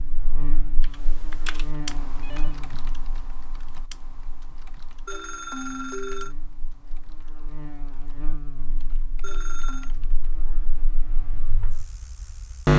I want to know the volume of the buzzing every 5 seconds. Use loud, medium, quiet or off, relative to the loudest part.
quiet, quiet, loud.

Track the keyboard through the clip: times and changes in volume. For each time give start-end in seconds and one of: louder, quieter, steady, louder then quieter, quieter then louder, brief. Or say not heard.
0.8-10.3 quieter.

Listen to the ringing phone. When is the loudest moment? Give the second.
6 s.